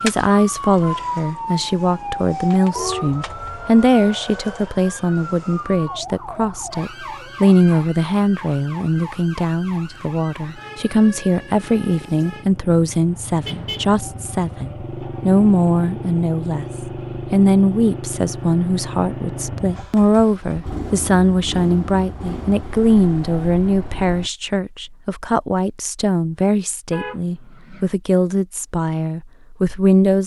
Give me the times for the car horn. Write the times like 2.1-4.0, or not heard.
2.8-3.5, 13.4-13.9, 26.9-27.9.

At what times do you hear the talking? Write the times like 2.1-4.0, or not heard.
0.0-30.2.